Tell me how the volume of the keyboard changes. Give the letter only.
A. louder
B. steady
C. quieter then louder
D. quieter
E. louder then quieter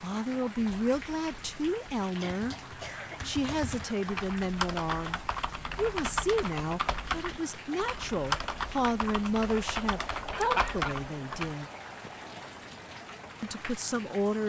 A.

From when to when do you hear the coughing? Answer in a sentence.
You can hear the coughing from 2.1 to 4.0 s and from 10.3 to 10.9 s.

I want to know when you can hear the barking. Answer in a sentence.
The barking can't be heard in this clip.